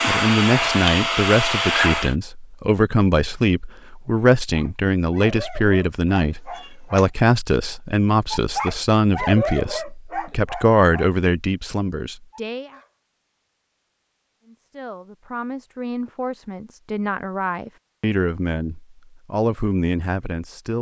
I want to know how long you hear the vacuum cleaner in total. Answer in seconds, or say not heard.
2 s.